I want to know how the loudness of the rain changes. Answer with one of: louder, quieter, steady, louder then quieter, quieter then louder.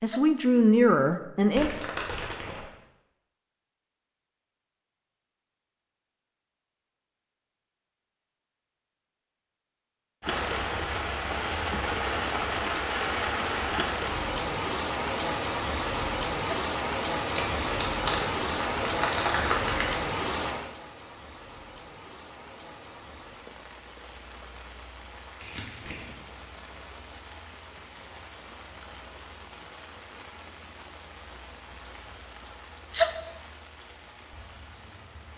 quieter.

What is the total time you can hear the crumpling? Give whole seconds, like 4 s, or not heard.
5 s.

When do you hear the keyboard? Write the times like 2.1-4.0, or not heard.
not heard.